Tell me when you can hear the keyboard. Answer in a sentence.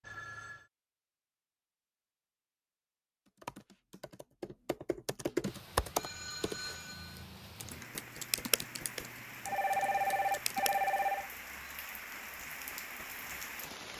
You can hear the keyboard from 3.2 to 11.0 s.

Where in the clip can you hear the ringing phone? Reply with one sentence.
You can hear the ringing phone from 0.0 to 0.7 s, from 6.0 to 7.2 s and from 9.4 to 11.3 s.